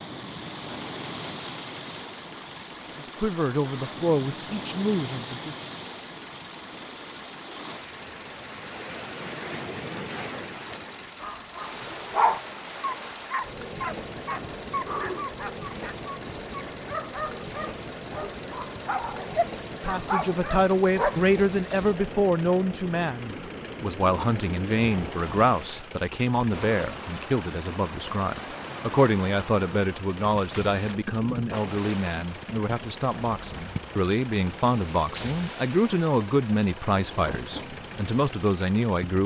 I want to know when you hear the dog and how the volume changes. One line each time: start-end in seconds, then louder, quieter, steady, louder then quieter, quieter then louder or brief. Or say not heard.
11.2-21.9 quieter then louder.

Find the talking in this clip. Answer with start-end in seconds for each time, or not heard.
3.0-5.6, 19.7-39.2.